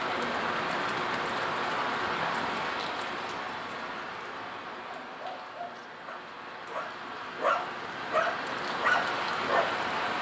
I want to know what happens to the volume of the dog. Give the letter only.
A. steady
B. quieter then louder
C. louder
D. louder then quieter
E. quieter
C.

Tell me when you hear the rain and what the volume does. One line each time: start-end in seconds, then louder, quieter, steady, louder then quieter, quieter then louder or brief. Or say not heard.
0.0-10.1 quieter then louder.